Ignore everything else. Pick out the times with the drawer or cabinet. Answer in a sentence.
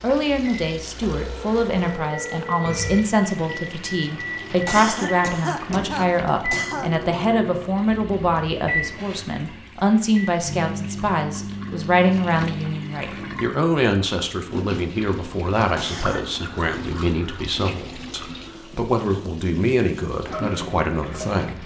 The drawer or cabinet can't be heard in this clip.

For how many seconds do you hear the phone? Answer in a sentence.
You can hear the phone for 2 seconds altogether.